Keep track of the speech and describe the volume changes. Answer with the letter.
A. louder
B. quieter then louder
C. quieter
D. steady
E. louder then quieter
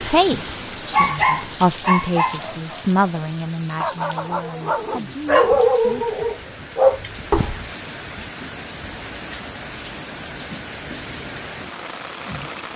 E.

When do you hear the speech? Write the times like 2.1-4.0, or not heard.
0.0-6.2.